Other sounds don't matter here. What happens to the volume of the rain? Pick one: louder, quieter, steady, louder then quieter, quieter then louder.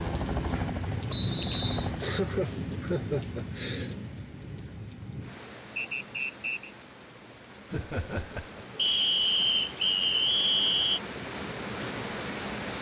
quieter then louder.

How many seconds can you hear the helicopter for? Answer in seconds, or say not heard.
2 s.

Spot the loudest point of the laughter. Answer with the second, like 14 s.
2 s.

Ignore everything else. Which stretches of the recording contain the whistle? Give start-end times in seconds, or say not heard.
1.1-1.9, 5.8-6.7, 8.8-11.0.